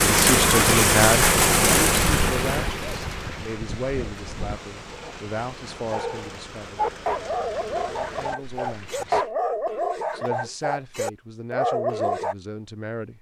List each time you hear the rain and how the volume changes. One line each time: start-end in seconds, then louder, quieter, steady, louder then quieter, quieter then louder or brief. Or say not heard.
0.0-9.3 quieter.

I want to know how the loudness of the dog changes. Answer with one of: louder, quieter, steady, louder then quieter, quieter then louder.
louder.